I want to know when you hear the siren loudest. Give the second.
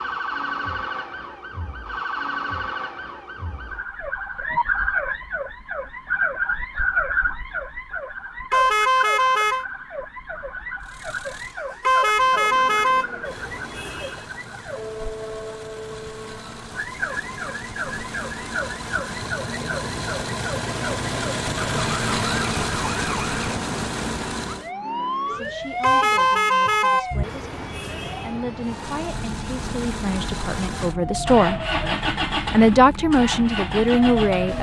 7 s.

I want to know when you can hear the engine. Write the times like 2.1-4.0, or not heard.
10.8-24.7, 28.6-34.5.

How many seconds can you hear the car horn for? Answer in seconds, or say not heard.
6 s.